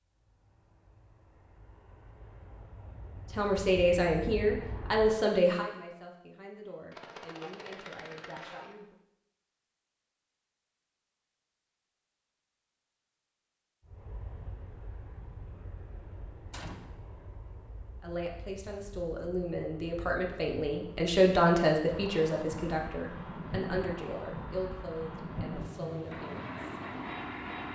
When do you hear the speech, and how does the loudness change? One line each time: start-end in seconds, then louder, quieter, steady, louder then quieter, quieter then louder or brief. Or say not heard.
3.3-8.9 quieter
18.0-26.8 louder then quieter.